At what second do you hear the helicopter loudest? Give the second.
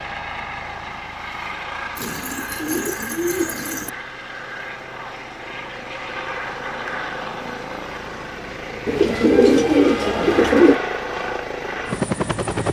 12 s.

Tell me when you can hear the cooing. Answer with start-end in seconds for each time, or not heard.
1.9-3.9, 8.8-10.8.